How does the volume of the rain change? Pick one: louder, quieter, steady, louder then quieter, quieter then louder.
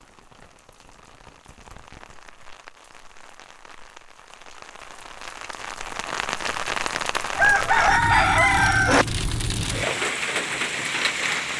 louder.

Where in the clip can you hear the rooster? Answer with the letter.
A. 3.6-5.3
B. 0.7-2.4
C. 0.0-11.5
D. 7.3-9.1
D.